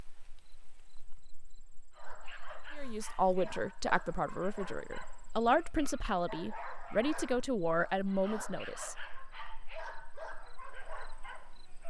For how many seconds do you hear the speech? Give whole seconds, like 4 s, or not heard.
6 s.